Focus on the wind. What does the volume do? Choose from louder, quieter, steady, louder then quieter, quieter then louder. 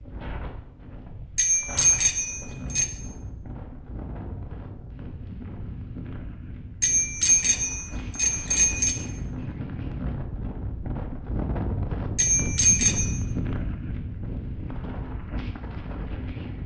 louder.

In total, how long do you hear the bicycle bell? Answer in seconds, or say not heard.
5 s.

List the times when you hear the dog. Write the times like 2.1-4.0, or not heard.
not heard.